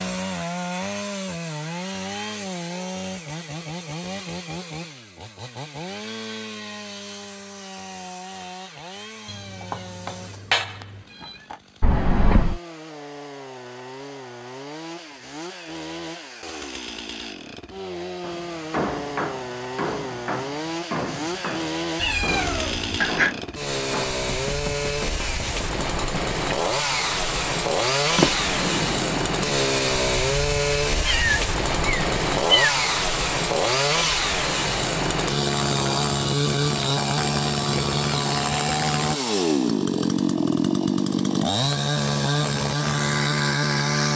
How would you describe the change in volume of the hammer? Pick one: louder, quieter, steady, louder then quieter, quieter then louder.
quieter.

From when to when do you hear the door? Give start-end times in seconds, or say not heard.
11.8-12.6, 28.1-29.5.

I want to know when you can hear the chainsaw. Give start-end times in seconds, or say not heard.
0.0-44.1.